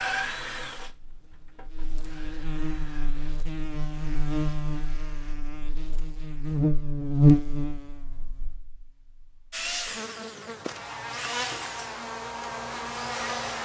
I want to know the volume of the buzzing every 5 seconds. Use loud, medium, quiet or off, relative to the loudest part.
medium, loud, medium.